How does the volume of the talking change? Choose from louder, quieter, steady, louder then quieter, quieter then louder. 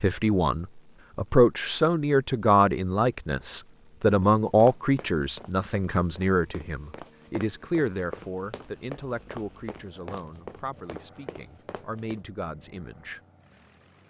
quieter.